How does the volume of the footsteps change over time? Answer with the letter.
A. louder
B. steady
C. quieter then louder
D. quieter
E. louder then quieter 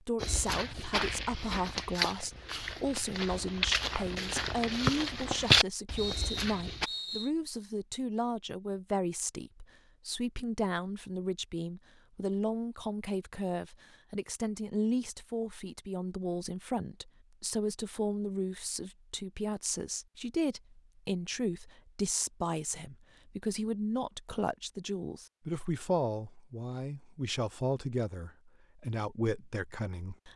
A.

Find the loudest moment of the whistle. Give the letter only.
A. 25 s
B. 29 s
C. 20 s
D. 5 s
D.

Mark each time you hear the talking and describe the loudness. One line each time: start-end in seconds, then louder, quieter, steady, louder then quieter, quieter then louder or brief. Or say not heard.
0.1-30.3 steady.